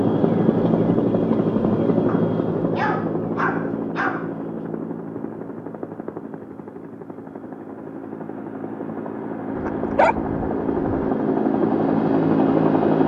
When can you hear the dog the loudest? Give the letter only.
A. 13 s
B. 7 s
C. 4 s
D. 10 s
D.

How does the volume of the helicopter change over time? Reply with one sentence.
The volume of the helicopter goes down, then up.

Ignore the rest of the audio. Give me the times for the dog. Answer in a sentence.
The dog can be heard from 2.0 to 4.3 s and from 9.6 to 10.8 s.